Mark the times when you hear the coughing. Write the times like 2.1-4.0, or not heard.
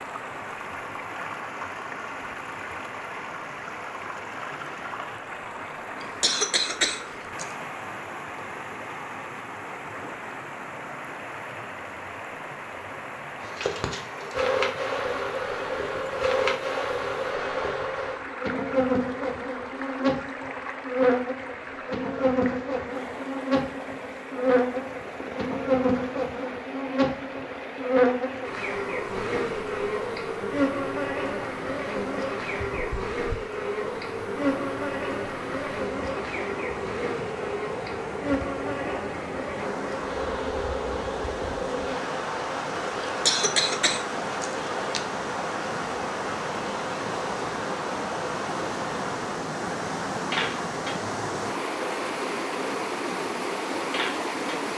6.0-7.5, 43.2-45.0.